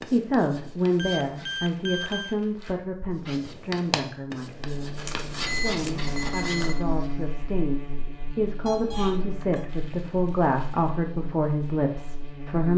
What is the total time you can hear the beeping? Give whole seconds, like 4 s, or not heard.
4 s.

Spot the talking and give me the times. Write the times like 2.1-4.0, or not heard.
0.0-12.7.